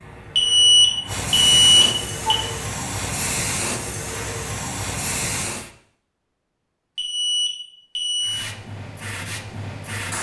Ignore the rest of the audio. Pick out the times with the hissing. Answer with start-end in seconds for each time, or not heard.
0.0-5.7, 8.2-10.1.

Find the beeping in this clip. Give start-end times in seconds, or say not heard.
0.3-2.4, 7.0-8.4.